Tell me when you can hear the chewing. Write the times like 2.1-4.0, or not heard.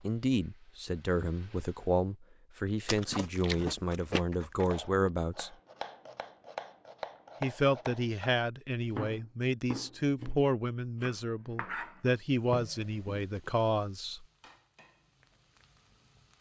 2.9-5.1.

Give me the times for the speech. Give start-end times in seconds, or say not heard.
0.0-5.5, 7.4-14.2.